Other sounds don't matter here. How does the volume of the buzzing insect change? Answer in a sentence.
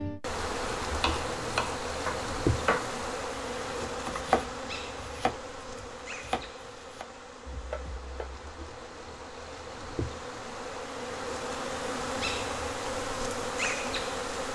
The volume of the buzzing insect goes down, then up.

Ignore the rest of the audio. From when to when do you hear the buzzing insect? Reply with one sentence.
You can hear the buzzing insect from 0.0 to 14.5 s.